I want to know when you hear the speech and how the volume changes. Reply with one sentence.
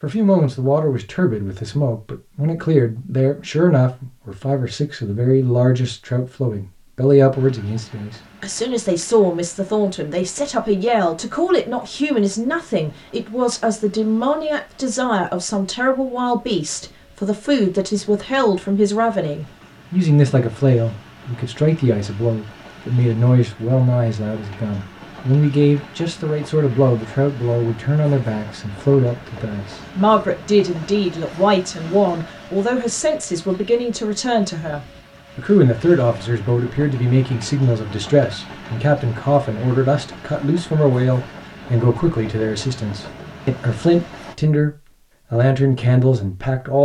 The speech can be heard from 0.0 to 46.7 s, at a steady volume.